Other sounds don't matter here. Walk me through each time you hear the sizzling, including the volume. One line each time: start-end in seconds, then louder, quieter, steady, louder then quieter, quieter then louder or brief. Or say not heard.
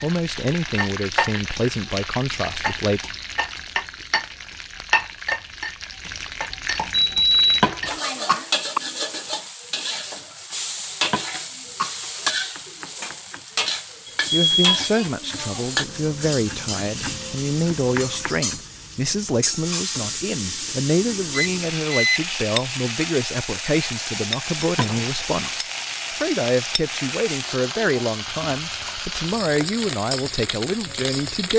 0.0-31.5 steady.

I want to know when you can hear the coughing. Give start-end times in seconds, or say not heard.
7.6-8.8, 11.1-12.3, 24.8-25.5.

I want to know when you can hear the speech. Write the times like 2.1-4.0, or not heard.
0.0-3.0, 14.3-31.5.